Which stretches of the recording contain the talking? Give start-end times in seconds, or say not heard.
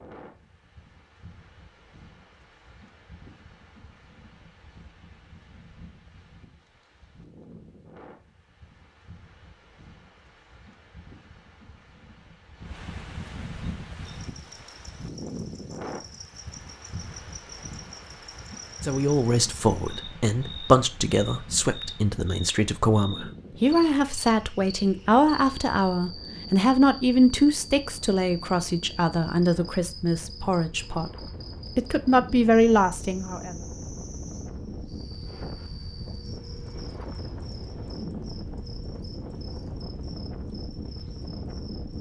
18.8-31.1, 31.8-33.5.